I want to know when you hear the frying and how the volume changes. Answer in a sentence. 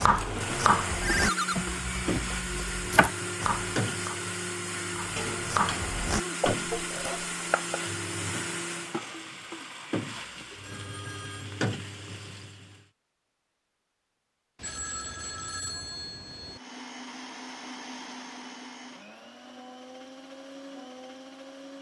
The frying can be heard from 0.0 to 12.8 s, at a steady volume.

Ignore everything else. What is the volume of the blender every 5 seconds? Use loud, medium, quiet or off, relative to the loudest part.
loud, loud, off, medium, medium.